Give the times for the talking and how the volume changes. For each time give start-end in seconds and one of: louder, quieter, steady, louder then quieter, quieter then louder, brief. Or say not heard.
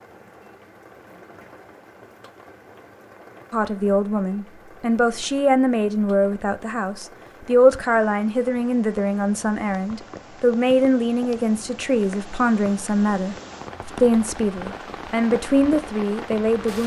3.5-16.8 steady.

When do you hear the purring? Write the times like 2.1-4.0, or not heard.
not heard.